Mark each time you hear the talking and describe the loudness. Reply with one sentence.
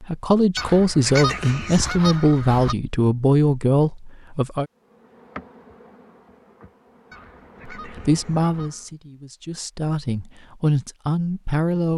The talking can be heard from 0.0 to 4.7 s, at a steady volume; and from 7.8 to 11.9 s, getting quieter then louder.